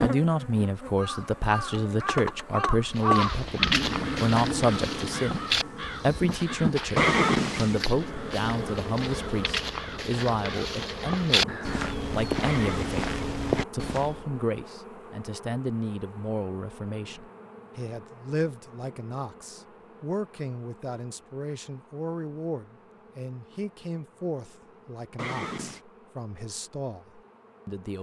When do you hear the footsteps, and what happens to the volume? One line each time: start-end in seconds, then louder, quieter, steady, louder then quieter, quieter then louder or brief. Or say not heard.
3.0-14.2 quieter then louder.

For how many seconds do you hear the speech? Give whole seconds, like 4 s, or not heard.
28 s.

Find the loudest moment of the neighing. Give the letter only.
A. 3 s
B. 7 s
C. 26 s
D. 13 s
B.